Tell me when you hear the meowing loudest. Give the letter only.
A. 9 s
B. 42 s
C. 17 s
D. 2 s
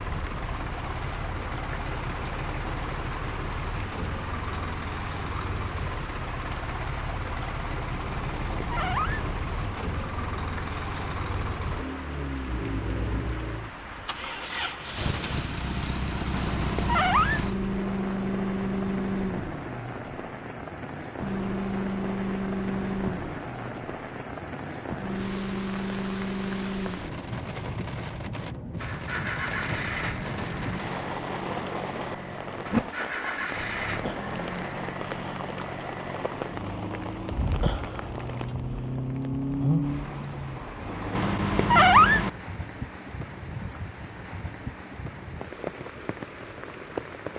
B.